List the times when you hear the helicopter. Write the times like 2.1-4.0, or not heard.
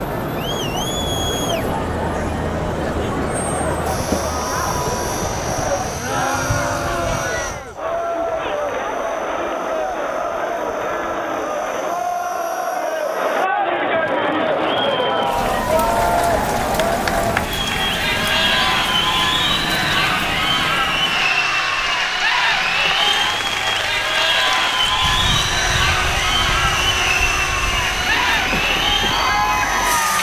0.0-13.5, 25.0-30.1.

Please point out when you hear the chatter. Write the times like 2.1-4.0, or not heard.
0.0-30.1.